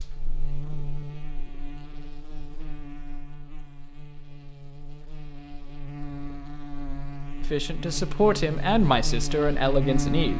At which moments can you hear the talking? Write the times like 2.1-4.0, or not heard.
7.5-10.3.